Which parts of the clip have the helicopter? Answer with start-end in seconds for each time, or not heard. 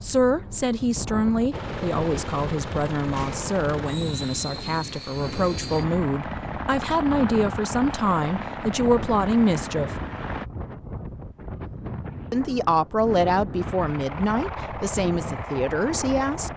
1.5-10.4, 13.6-16.5.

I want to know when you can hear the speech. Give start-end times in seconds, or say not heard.
0.0-9.9, 12.3-16.5.